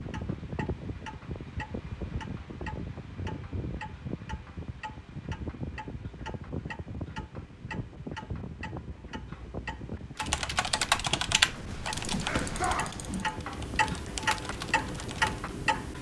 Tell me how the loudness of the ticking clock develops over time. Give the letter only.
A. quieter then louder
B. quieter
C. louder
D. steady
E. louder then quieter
C.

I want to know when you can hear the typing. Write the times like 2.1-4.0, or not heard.
10.2-15.5.